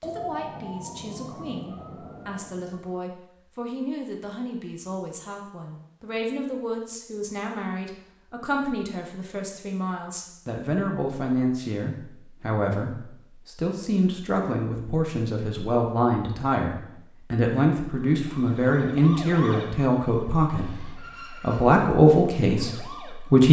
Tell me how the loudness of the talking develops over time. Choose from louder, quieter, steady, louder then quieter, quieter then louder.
louder.